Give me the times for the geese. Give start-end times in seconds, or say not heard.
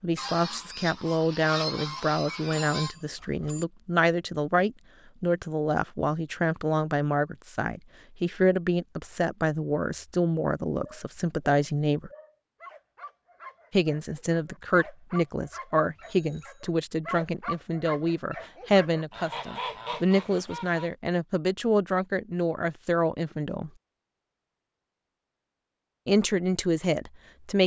0.1-3.0, 19.1-20.9.